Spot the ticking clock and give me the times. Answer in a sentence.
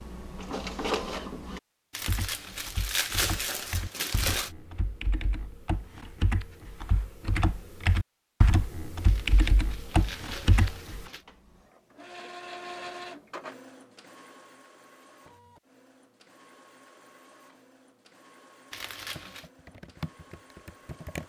You can't hear the ticking clock here.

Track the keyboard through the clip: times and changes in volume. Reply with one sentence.
You can hear the keyboard from 2.0 to 11.1 s, getting louder; and briefly from 19.1 to 21.2 s.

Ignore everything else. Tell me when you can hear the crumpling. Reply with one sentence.
You can hear the crumpling from 1.9 to 4.5 s, from 9.1 to 11.2 s and from 18.7 to 19.5 s.